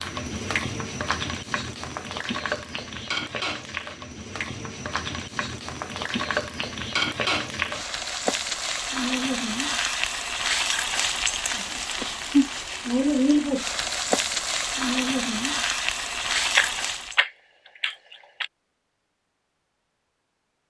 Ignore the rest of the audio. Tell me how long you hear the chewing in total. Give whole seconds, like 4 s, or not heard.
2 s.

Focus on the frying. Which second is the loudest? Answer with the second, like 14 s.
13 s.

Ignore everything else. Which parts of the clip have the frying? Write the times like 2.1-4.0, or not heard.
0.0-17.2.